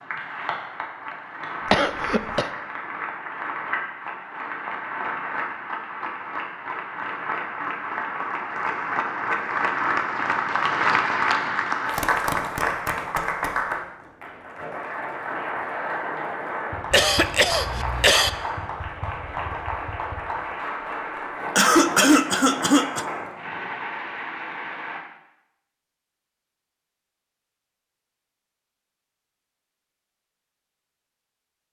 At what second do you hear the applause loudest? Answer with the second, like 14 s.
11 s.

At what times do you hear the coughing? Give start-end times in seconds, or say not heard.
1.7-2.5, 16.9-18.3, 21.6-23.1.